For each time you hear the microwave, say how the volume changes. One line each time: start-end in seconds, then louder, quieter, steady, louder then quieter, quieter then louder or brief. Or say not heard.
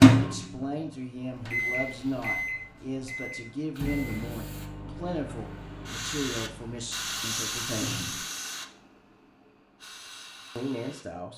0.0-8.2 quieter.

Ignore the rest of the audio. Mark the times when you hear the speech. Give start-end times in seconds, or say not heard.
0.1-8.2, 10.6-11.3.